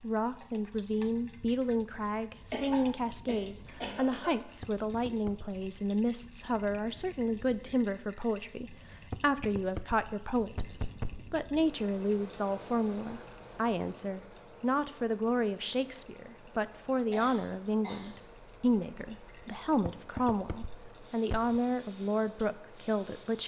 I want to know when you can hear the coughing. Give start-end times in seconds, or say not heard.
2.5-4.3, 17.1-18.1.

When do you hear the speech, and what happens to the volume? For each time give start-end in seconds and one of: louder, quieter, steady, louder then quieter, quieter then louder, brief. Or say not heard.
0.0-10.7 steady
11.3-23.4 steady.